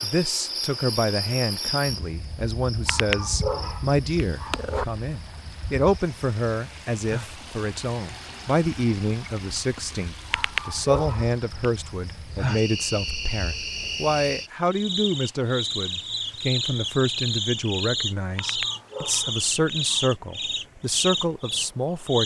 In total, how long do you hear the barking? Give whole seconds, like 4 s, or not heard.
5 s.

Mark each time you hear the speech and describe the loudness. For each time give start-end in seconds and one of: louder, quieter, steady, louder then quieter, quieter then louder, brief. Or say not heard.
0.0-22.2 steady.